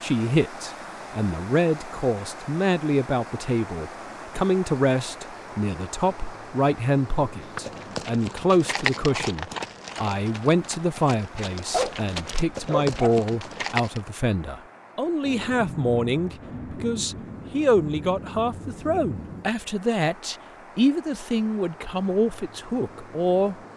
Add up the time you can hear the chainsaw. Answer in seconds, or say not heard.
not heard.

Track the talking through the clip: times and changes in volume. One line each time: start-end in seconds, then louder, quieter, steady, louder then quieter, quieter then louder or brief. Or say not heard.
0.0-23.7 steady.